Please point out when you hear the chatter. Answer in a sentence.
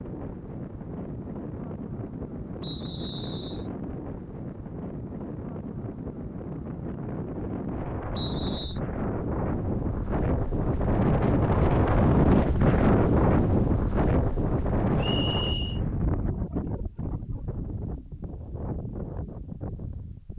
You can't hear the chatter here.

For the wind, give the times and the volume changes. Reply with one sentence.
You can hear the wind from 0.0 to 20.3 s, getting louder then quieter.